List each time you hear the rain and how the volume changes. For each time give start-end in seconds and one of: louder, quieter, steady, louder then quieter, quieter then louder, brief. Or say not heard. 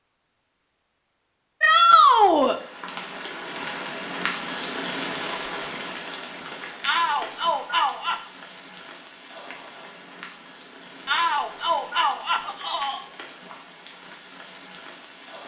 2.4-15.4 quieter.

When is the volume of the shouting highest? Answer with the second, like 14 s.
2 s.